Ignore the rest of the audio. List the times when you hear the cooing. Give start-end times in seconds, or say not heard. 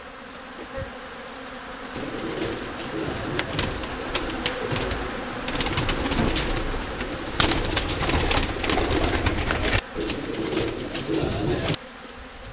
1.9-11.8.